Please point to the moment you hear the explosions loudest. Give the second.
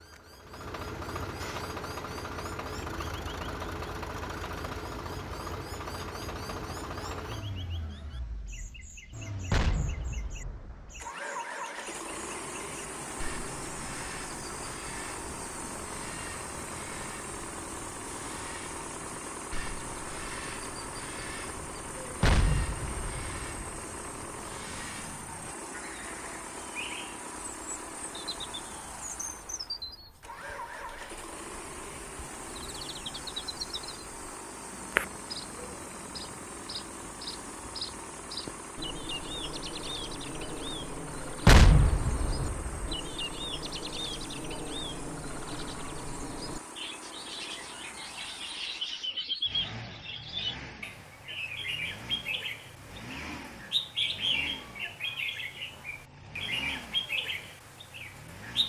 42 s.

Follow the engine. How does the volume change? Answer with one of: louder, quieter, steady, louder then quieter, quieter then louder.
quieter.